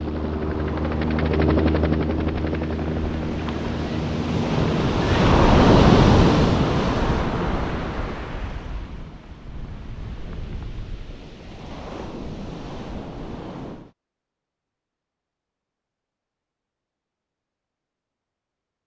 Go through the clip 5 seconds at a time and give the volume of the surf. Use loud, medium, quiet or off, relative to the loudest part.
medium, loud, quiet, off.